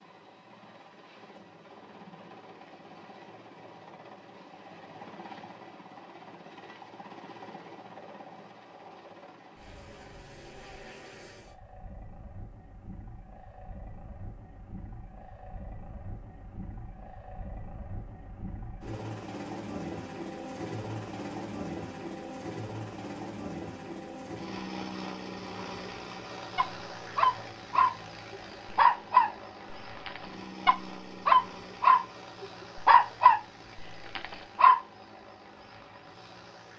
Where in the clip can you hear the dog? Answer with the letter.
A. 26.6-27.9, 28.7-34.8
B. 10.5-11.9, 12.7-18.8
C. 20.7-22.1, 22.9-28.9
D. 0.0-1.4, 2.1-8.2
A.